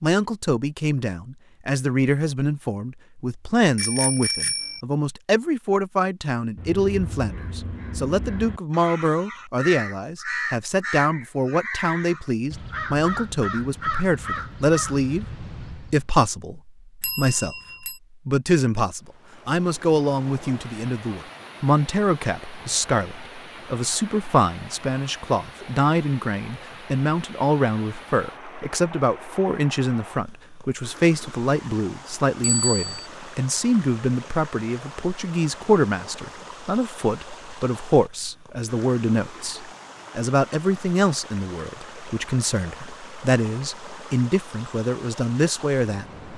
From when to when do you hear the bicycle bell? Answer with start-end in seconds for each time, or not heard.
3.8-4.8, 17.0-17.9, 32.4-33.0.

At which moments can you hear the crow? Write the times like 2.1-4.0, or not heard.
6.5-16.1.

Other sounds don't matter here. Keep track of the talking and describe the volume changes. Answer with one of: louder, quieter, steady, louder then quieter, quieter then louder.
steady.